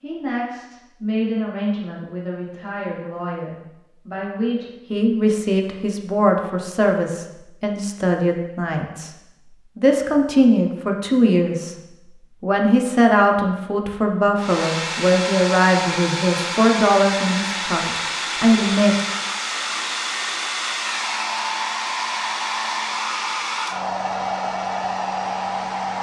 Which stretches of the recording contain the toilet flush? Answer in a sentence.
You can't hear the toilet flush here.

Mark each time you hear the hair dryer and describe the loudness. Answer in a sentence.
The hair dryer can be heard from 14.3 to 25.9 s, at a steady volume.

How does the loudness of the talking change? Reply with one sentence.
The loudness of the talking goes up.